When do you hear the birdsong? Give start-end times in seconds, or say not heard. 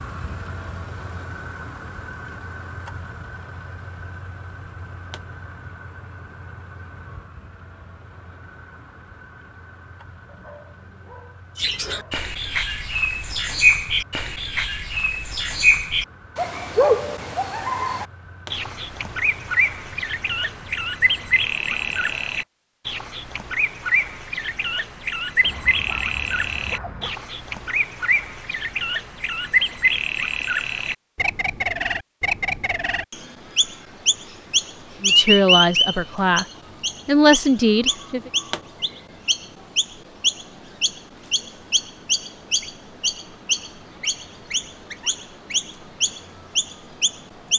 11.6-47.5.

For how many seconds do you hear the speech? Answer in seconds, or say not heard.
3 s.